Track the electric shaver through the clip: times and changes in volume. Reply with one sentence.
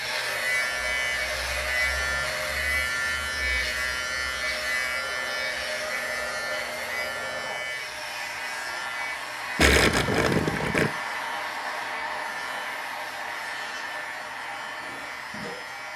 You can hear the electric shaver from 0.0 to 15.9 s, getting quieter.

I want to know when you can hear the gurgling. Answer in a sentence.
You can hear the gurgling from 9.6 to 10.9 s.